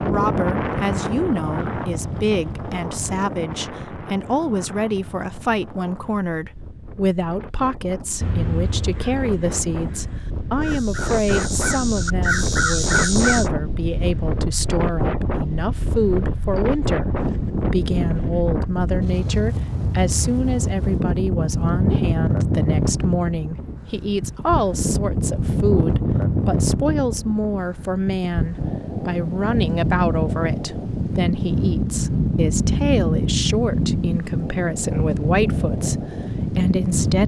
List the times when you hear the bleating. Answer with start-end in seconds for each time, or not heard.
not heard.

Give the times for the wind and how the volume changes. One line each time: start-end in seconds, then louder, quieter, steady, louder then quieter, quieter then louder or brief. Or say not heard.
0.0-37.2 louder.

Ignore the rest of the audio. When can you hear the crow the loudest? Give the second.
13 s.